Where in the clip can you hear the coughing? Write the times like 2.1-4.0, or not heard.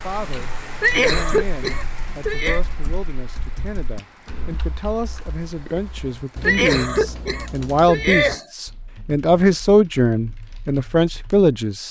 0.8-2.6, 6.4-8.4.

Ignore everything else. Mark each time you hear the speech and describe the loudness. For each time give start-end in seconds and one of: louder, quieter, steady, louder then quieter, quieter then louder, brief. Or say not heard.
0.0-11.8 louder.